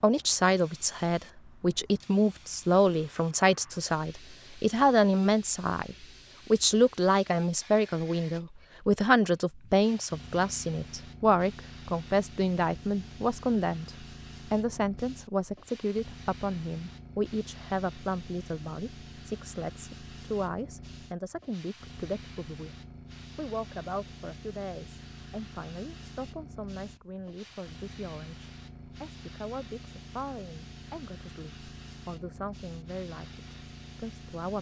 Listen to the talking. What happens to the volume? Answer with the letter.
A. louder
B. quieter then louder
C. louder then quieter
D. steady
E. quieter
E.